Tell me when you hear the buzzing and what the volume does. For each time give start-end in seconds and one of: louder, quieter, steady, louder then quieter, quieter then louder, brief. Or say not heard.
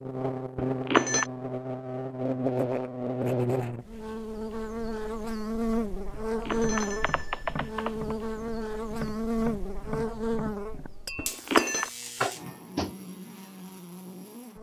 0.0-14.5 quieter.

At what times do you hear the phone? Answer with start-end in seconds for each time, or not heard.
0.6-1.3, 6.5-8.2, 11.2-11.9.